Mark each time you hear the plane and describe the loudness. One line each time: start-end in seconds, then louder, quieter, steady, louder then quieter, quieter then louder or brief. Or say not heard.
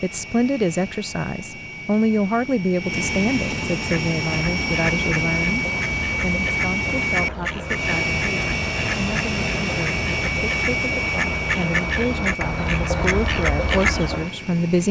0.0-14.8 louder then quieter.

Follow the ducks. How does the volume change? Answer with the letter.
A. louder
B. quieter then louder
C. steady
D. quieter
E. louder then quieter
A.